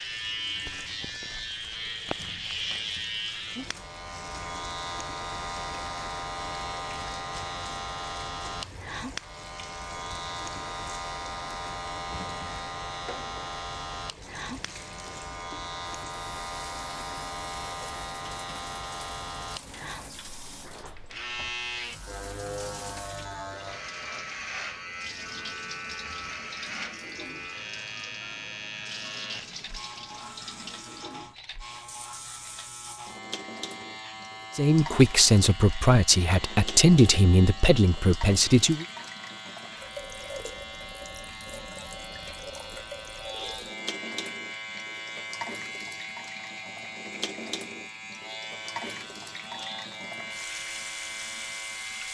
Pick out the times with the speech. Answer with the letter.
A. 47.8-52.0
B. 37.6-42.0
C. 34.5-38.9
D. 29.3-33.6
C.